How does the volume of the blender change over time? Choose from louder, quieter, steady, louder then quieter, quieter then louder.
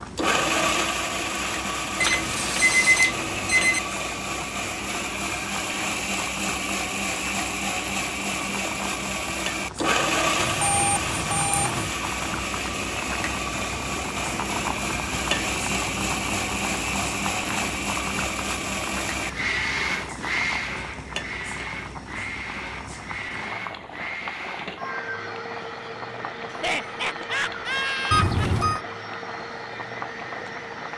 quieter.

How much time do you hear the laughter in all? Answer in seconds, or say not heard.
2 s.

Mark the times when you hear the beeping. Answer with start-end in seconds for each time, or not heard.
2.0-3.8, 10.4-11.9, 28.1-28.8.